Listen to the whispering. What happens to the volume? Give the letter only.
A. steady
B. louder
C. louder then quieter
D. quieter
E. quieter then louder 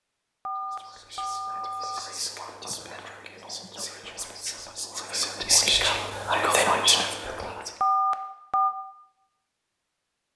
B.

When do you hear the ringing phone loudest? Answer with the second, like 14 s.
8 s.